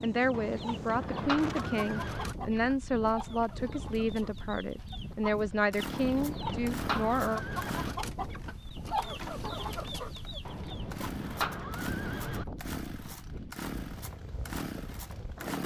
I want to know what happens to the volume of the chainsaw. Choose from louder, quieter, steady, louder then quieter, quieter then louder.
steady.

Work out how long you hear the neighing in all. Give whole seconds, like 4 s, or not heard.
6 s.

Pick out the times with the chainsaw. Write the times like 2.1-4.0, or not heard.
5.5-15.6.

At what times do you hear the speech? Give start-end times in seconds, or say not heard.
0.0-7.5.